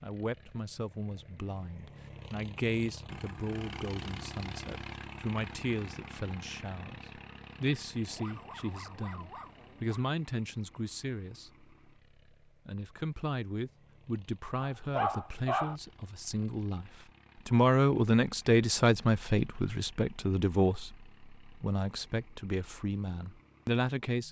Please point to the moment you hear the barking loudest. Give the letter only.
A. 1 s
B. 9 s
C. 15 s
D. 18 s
C.